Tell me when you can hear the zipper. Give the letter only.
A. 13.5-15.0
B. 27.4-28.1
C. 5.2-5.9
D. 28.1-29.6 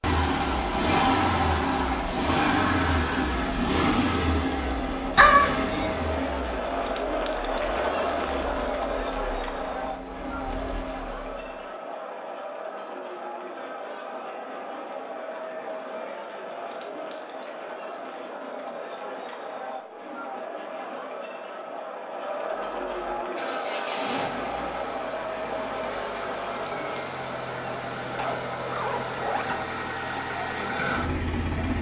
D.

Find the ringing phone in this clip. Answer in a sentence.
The ringing phone can be heard from 5.2 to 5.9 s.